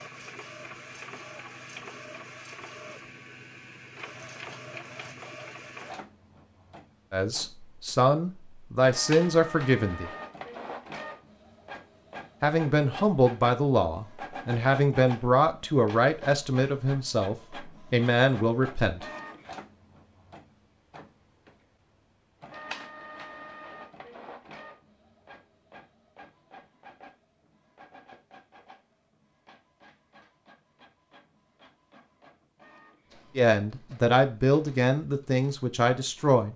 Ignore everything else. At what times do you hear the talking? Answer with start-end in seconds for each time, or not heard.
7.1-10.1, 12.4-19.1, 33.4-36.5.